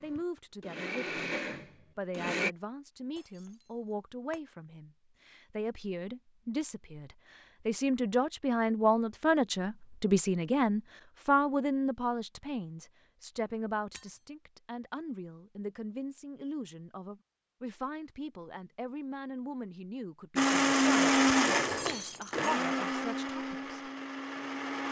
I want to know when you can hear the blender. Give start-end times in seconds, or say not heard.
0.0-2.5, 20.4-24.8.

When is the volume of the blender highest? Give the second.
21 s.